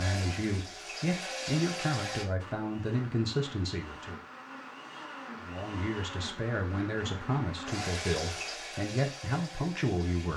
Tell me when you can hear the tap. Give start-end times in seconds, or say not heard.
0.0-2.2, 7.7-10.3.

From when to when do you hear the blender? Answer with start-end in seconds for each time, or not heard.
2.4-7.9.